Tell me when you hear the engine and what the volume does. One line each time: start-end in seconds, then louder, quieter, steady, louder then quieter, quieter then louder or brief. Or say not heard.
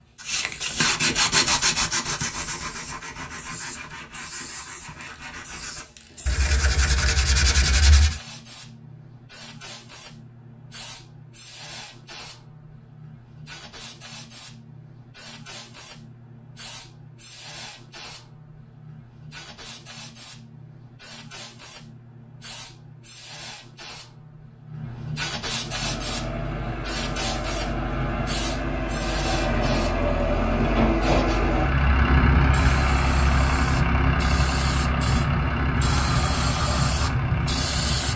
25.6-38.1 louder then quieter.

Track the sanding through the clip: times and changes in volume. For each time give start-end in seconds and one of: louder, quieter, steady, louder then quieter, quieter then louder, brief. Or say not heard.
0.2-8.2 quieter then louder.